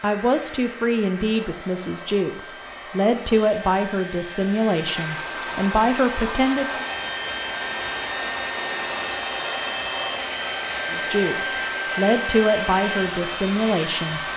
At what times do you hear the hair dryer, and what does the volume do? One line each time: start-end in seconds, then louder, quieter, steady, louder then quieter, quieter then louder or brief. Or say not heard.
0.0-14.3 louder.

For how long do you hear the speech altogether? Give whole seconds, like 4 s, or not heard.
10 s.